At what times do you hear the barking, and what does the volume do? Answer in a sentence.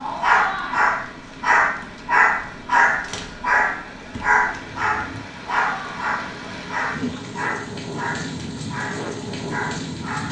The barking can be heard from 0.0 to 10.2 s, getting quieter.